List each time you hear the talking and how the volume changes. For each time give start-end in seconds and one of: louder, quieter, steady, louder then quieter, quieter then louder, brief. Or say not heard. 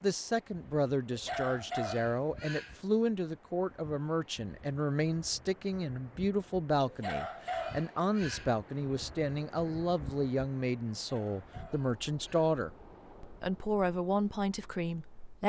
0.0-15.4 steady.